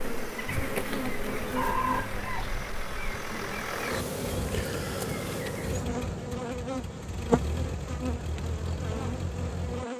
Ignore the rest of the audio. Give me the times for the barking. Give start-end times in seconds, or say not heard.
not heard.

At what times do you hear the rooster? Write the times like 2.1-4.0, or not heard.
1.5-2.5.